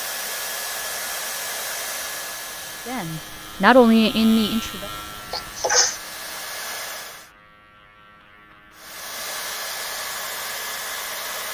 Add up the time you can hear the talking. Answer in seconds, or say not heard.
2 s.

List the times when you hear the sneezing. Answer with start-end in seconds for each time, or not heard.
5.3-6.0.